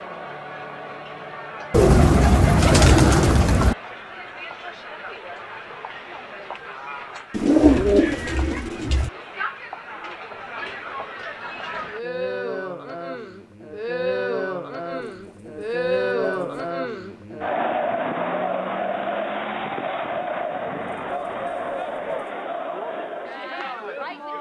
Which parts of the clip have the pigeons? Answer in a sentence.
You can hear the pigeons from 1.7 to 3.8 s, from 7.3 to 9.1 s, from 14.9 to 16.7 s and from 20.8 to 22.4 s.